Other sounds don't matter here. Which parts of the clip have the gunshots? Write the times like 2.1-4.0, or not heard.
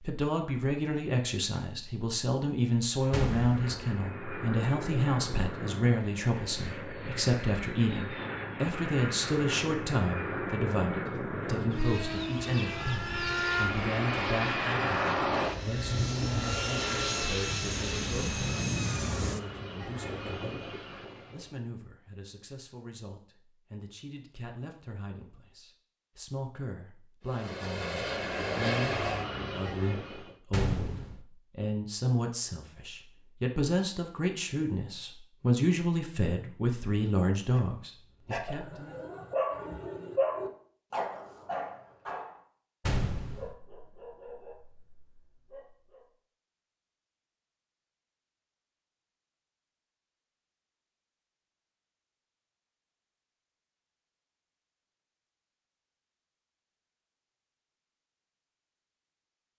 3.1-3.8, 30.5-31.2, 42.9-43.5.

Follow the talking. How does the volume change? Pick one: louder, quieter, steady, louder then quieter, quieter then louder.
quieter then louder.